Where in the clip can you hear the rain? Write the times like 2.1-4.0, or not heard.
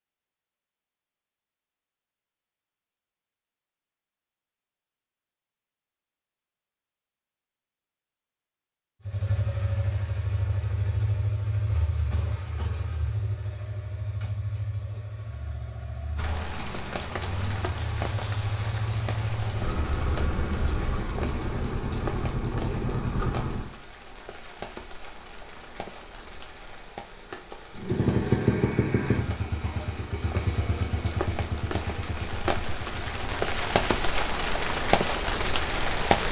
16.1-36.2.